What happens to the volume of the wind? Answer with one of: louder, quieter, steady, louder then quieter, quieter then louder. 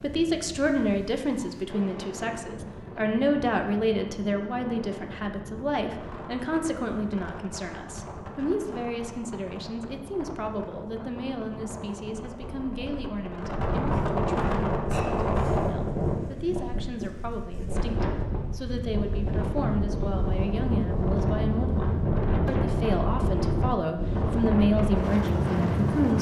louder.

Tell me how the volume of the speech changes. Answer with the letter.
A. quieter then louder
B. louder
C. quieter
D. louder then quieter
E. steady
A.